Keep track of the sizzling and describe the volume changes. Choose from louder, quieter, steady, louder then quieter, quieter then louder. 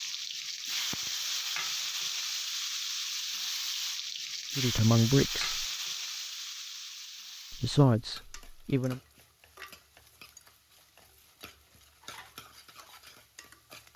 quieter.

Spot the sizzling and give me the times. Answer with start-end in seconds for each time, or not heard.
0.0-13.9.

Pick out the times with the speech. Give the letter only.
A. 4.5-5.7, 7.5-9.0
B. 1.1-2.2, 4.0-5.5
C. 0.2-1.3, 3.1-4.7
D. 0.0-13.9
A.